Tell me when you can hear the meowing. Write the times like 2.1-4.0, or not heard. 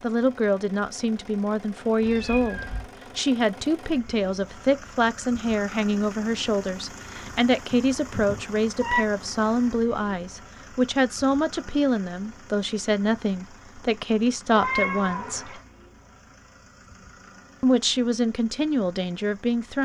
2.0-2.9, 7.7-9.0, 14.6-15.6.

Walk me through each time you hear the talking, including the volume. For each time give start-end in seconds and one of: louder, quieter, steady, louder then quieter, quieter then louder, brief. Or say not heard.
0.0-15.6 steady
17.6-19.7 brief.